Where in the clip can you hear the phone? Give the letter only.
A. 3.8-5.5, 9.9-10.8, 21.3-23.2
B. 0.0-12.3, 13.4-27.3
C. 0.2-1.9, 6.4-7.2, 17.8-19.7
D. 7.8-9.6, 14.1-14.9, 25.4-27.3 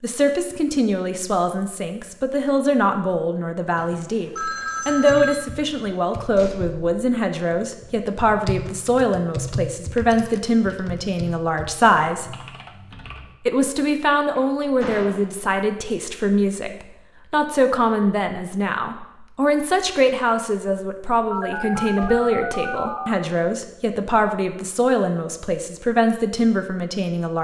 A.